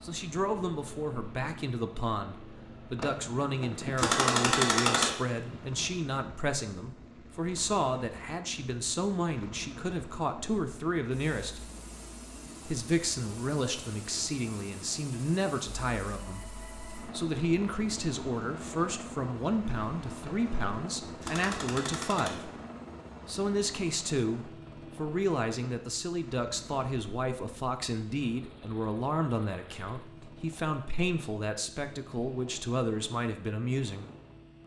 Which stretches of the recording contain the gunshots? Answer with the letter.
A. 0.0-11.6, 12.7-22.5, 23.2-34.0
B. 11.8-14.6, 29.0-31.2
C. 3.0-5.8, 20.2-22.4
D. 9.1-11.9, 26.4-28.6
C.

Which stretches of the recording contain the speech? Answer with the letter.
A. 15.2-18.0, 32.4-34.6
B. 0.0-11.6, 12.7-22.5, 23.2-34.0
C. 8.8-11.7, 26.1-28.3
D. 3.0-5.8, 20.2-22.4
B.